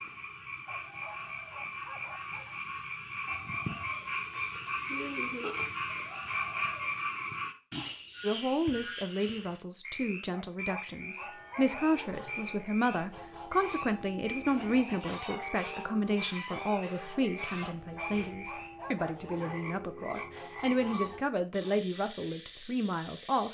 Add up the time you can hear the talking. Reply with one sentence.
The talking can be heard for 15 seconds in total.